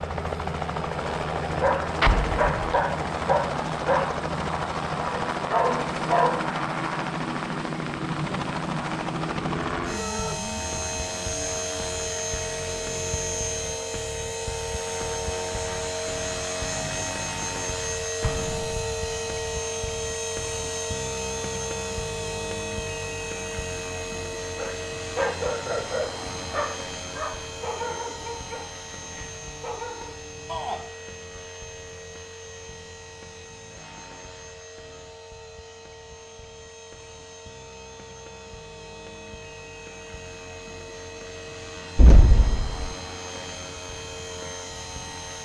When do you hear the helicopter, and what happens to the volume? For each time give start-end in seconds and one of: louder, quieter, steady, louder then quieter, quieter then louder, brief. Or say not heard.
0.0-45.3 quieter.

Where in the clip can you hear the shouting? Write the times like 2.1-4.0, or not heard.
9.9-10.4, 30.4-30.9.